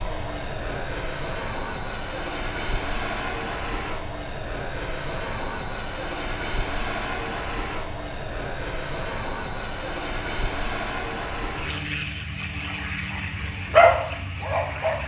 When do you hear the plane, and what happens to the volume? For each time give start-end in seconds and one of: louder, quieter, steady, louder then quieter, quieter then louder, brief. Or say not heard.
0.0-15.0 steady.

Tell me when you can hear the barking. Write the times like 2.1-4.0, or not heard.
13.7-15.0.